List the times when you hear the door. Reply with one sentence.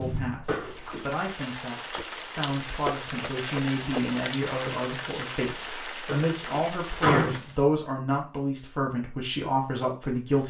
You can hear the door from 0.5 to 1.1 s and from 6.0 to 7.4 s.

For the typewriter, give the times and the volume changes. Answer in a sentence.
You can't hear the typewriter here.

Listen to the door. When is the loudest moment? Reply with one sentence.
The loudest moment of the door is at 7 seconds.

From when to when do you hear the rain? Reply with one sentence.
The rain can be heard from 0.0 to 7.6 s.